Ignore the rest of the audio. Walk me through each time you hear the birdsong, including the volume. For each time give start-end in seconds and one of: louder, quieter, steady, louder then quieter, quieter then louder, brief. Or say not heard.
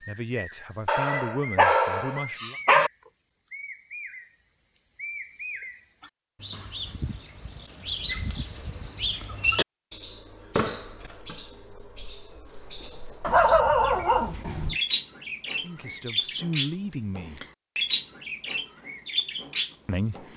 0.0-20.3 louder.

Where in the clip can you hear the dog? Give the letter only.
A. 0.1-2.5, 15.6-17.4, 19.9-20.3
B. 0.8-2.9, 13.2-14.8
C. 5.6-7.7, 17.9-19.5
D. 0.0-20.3
B.